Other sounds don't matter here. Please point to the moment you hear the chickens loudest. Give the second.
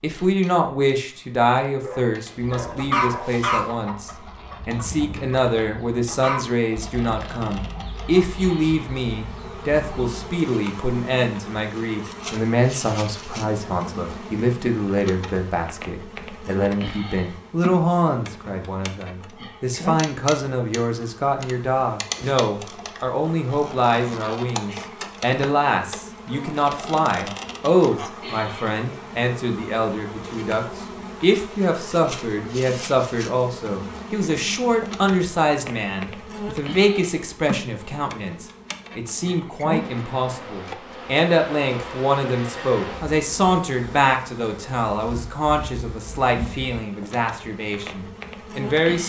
3 s.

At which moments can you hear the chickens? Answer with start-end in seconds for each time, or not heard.
2.4-10.2.